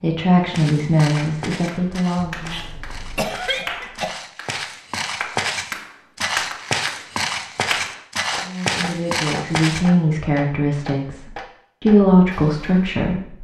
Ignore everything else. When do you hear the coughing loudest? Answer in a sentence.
The volume of the coughing peaks at 3 seconds.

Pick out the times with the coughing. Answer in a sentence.
The coughing can be heard from 2.1 to 4.1 s.